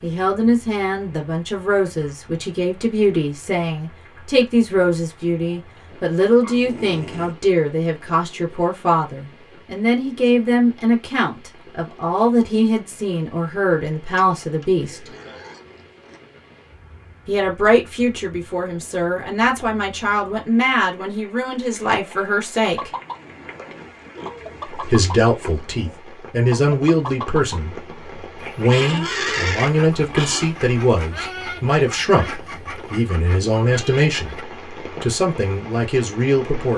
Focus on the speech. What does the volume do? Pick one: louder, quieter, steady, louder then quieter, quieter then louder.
steady.